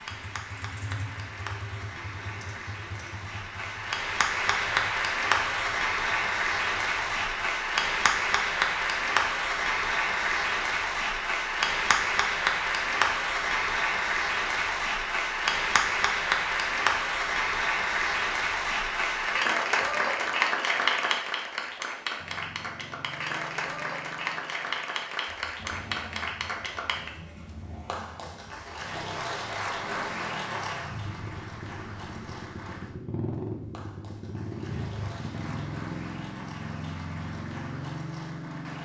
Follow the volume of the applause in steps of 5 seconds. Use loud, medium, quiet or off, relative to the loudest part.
medium, loud, loud, loud, loud, medium, quiet, quiet.